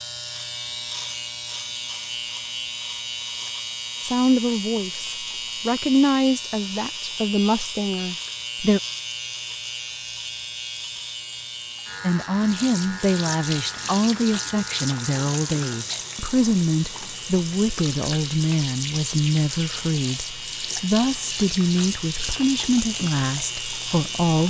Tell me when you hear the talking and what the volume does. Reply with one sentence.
The talking can be heard from 4.0 to 8.8 s, getting louder then quieter; and from 12.0 to 24.4 s, at a steady volume.